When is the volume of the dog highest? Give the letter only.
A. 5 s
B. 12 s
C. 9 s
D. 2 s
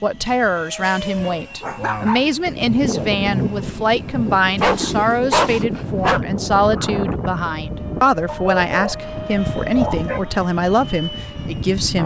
A.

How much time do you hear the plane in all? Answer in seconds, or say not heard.
12 s.